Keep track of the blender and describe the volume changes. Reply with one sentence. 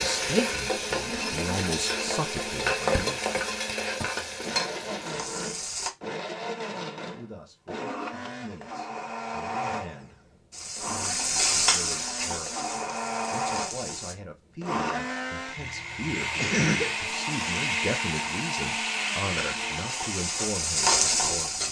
The volume of the blender goes up.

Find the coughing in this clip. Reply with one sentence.
You can hear the coughing from 15.6 to 16.9 s.